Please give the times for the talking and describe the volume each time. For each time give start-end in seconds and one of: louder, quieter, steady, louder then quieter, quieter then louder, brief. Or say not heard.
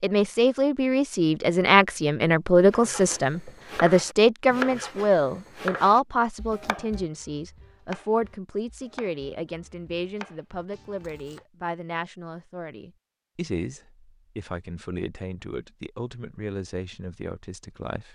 0.0-18.1 quieter.